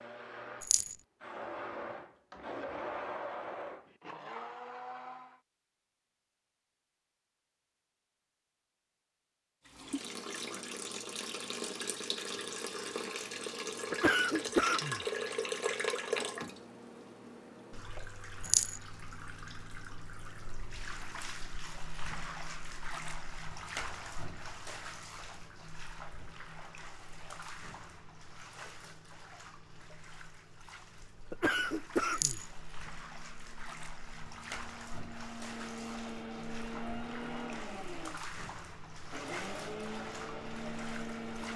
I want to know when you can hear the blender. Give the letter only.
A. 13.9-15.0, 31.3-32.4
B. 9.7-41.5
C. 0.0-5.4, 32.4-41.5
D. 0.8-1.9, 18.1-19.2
C.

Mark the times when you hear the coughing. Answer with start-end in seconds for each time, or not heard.
13.9-15.0, 31.3-32.4.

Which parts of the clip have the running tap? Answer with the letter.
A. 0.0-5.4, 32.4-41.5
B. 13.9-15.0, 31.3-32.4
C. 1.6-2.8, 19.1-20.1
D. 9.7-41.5
D.